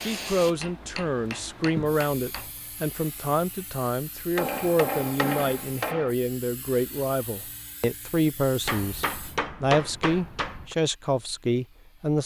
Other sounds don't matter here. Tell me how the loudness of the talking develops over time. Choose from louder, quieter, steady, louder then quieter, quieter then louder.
steady.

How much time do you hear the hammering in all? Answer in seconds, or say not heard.
6 s.